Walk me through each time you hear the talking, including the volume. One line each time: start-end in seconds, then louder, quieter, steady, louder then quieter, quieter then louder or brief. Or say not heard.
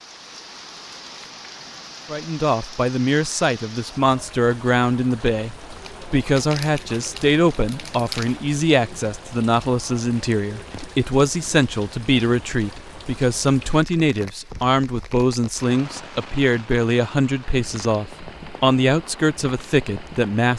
2.1-20.5 steady.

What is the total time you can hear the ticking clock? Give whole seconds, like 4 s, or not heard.
not heard.